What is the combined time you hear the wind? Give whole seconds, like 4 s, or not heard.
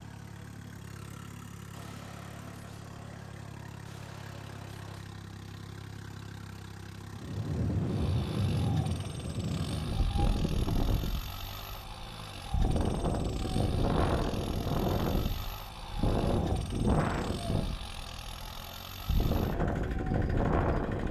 14 s.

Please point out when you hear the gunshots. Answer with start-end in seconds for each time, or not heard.
1.7-5.0.